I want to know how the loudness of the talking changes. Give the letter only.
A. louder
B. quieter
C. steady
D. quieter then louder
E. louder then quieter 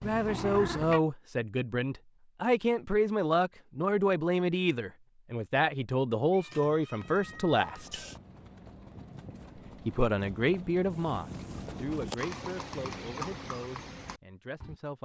B.